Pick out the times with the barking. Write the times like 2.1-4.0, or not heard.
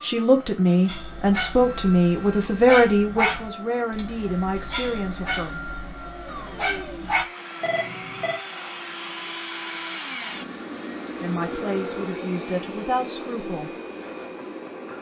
0.8-7.2.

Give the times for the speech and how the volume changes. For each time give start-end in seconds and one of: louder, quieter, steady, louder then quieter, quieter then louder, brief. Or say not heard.
0.0-5.6 quieter
11.2-13.8 brief.